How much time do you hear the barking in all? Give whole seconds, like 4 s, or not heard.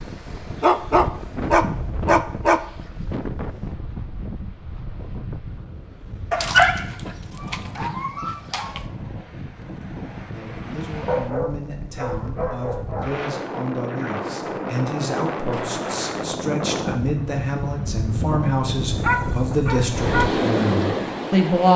8 s.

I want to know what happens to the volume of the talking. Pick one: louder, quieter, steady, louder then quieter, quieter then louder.
louder.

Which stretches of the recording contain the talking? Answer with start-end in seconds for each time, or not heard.
10.3-21.7.